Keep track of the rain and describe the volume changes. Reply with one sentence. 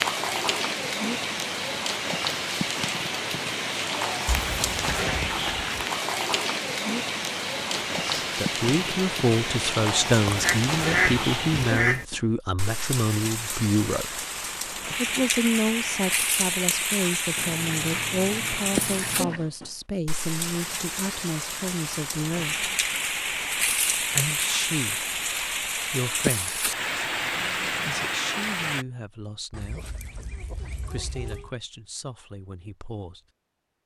The loudness of the rain stays about the same.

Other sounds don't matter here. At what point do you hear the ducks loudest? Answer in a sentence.
The loudest moment of the ducks is at 11 seconds.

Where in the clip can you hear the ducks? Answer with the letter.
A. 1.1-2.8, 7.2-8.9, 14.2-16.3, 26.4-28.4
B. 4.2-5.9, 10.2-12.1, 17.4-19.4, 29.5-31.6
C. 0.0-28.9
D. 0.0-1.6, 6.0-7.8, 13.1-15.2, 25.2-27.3
B.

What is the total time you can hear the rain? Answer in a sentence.
You can hear the rain for 29 seconds altogether.